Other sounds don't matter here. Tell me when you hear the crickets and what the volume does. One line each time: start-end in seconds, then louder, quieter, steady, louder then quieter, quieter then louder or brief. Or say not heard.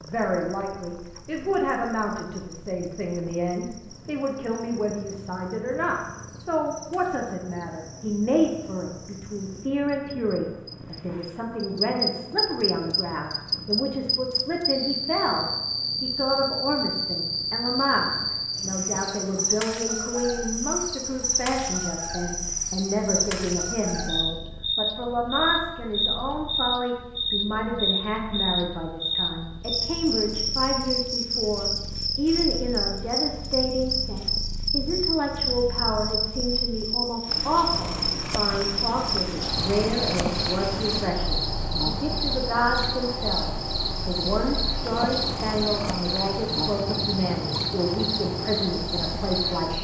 0.0-49.7 louder.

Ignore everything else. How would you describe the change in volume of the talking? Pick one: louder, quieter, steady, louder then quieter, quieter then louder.
steady.